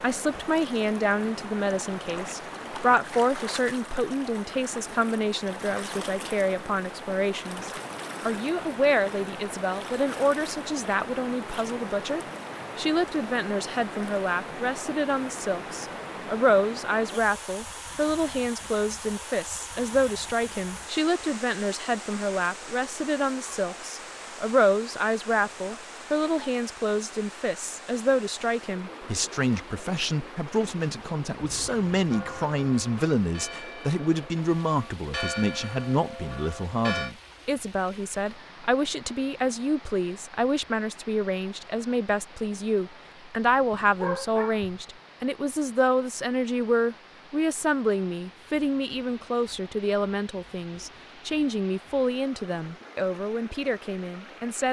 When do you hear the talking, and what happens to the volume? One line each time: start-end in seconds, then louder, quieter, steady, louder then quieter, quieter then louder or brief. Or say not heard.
0.0-54.6 steady.